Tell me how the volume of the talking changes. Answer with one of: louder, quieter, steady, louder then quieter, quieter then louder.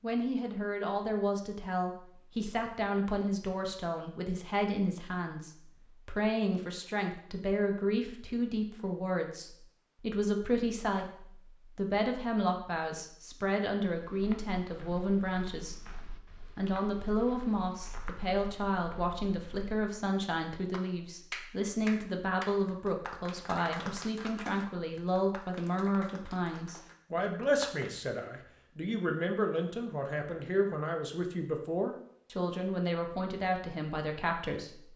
steady.